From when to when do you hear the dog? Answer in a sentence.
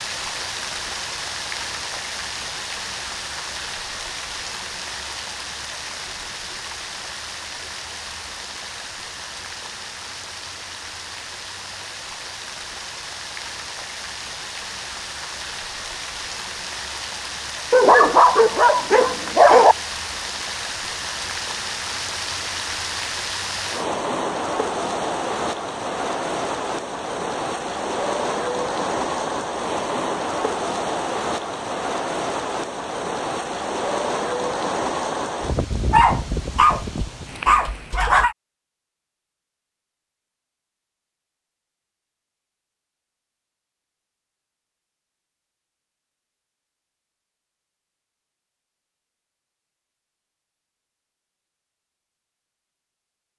You can hear the dog from 17.7 to 19.8 s and from 35.9 to 38.4 s.